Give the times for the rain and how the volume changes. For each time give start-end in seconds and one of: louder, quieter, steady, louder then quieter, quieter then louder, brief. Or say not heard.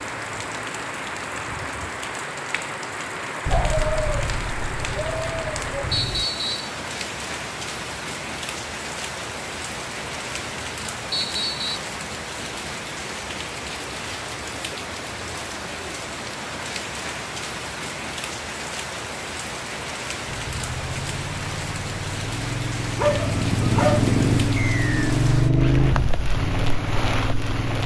0.0-27.8 steady.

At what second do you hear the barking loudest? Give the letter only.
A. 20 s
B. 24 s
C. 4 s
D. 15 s
B.